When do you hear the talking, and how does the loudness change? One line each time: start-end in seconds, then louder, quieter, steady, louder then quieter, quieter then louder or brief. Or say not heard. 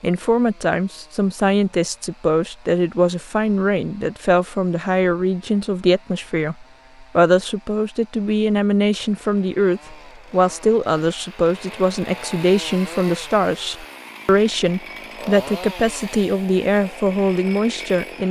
0.0-18.2 steady.